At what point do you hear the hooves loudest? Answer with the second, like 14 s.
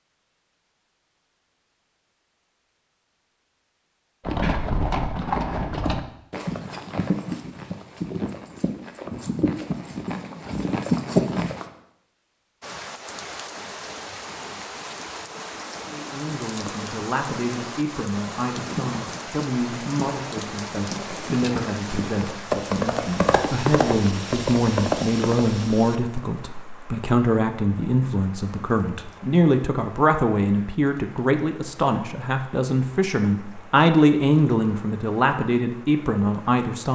11 s.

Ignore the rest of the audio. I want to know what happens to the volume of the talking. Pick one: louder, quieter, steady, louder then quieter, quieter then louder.
louder.